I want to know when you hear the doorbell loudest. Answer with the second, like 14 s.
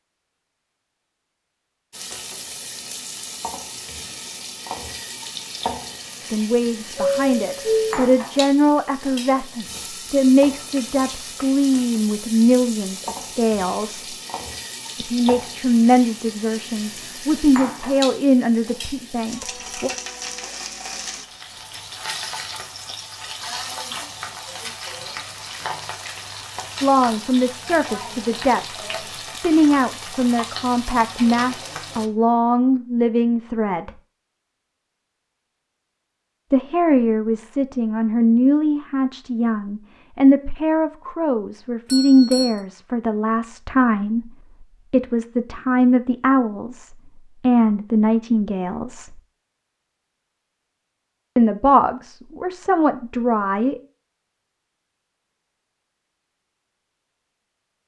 8 s.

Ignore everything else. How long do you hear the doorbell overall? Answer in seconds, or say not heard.
2 s.